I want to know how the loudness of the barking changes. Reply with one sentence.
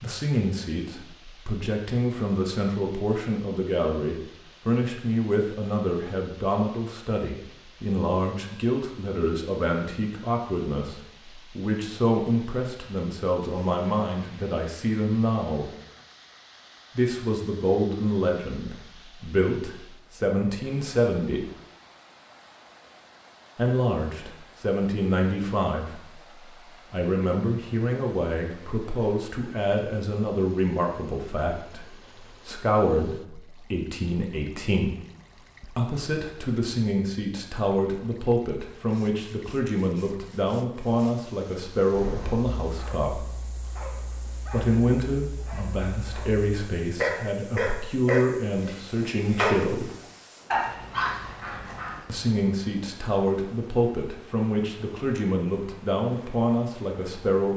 The volume of the barking goes up.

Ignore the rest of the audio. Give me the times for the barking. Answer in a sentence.
The barking can be heard from 41.9 to 52.0 s.